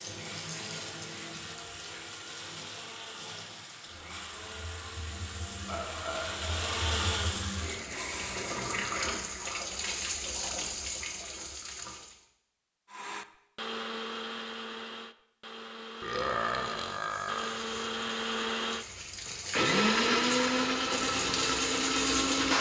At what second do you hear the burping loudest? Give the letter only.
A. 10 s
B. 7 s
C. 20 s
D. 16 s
D.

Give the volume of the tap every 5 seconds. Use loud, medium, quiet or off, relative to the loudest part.
medium, loud, loud, medium, loud.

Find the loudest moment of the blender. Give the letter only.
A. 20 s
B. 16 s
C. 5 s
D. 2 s
A.